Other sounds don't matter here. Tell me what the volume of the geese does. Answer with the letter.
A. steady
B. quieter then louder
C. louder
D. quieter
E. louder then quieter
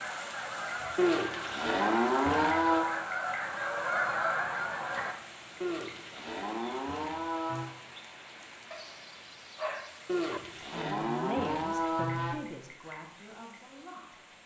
C.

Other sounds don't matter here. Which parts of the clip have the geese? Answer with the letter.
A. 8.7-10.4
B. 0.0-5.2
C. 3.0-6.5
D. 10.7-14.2
B.